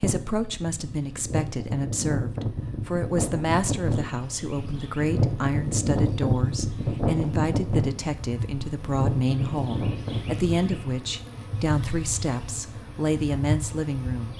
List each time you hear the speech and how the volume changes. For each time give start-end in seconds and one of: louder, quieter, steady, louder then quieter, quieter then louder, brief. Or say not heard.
0.0-14.3 steady.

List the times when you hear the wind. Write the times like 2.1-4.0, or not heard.
0.0-10.8.